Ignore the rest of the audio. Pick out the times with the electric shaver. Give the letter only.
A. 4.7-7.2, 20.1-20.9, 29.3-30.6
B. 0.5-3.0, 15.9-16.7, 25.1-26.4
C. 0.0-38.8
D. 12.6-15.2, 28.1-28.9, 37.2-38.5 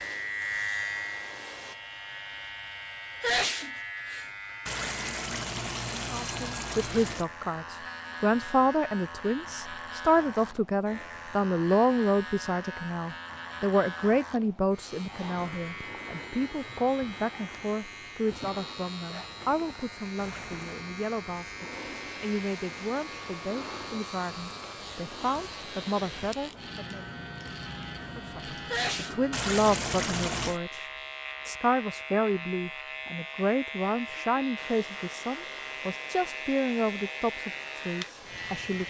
C.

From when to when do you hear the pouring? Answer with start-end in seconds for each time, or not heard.
4.7-7.2, 20.1-20.9, 29.3-30.6.